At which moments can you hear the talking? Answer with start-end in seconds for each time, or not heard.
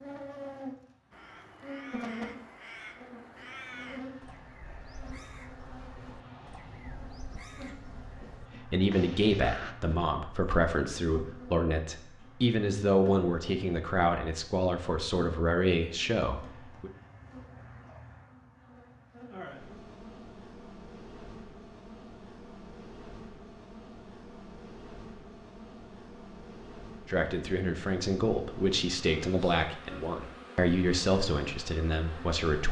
8.6-16.9, 27.1-32.6.